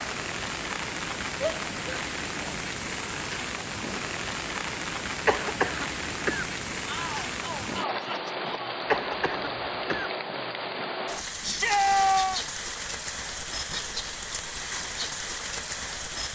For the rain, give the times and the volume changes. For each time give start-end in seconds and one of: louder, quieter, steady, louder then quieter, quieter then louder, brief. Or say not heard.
0.0-16.3 steady.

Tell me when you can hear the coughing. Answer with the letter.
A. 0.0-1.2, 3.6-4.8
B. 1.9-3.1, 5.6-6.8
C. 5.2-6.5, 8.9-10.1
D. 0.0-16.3
C.